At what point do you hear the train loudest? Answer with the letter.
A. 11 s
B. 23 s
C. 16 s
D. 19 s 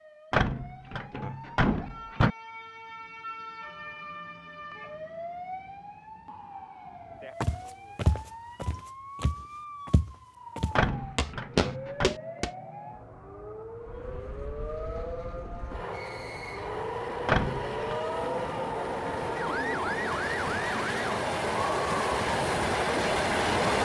B.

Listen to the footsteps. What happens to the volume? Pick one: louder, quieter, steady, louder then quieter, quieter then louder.
quieter then louder.